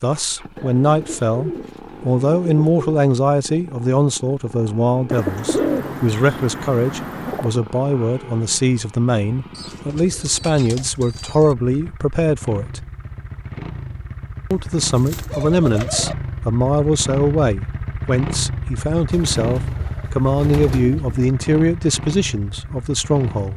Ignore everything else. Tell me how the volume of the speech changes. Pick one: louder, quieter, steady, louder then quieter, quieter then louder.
steady.